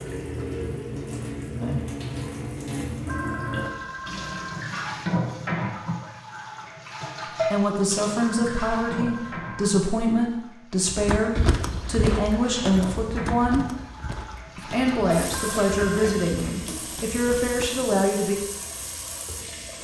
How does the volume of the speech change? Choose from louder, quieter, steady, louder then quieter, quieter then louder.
steady.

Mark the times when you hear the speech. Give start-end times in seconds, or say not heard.
7.5-13.7, 14.6-18.4.